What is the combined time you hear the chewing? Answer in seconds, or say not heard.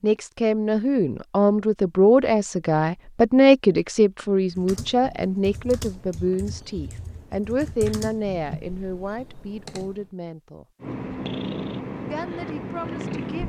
not heard.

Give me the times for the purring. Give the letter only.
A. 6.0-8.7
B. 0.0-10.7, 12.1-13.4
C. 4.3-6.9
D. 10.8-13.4
D.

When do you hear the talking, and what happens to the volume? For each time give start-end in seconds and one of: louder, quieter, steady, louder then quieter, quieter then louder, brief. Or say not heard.
0.0-10.7 quieter
12.1-13.4 brief.